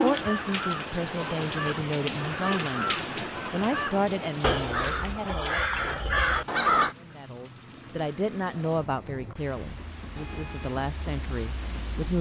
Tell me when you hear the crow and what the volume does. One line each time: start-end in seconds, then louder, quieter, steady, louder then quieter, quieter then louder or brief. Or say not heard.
0.1-6.9 louder.